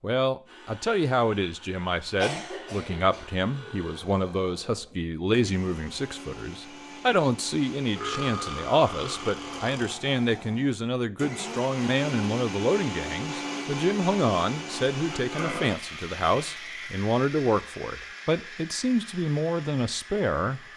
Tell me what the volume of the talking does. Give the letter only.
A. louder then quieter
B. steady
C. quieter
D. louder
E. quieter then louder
B.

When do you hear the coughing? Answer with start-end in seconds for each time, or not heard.
2.2-3.3.